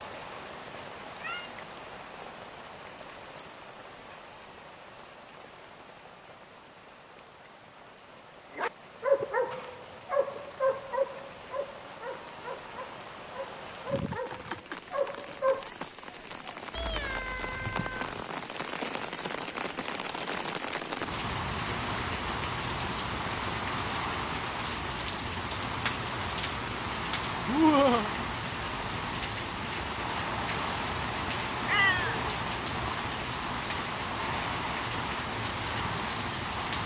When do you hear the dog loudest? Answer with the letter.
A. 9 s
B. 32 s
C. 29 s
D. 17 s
A.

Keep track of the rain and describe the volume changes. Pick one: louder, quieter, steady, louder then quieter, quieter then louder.
louder.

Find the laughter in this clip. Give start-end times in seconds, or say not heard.
27.4-28.1.